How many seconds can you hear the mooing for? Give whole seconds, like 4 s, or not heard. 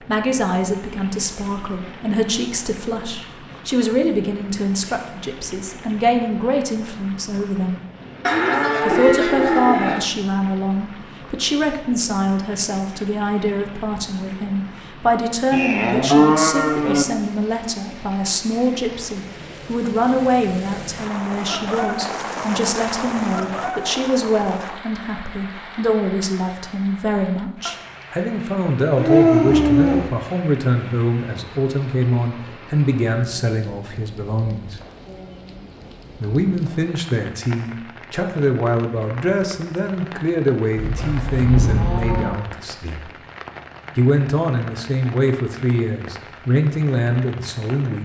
6 s.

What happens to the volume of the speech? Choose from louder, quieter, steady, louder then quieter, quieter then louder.
steady.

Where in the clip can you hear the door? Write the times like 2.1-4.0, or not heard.
not heard.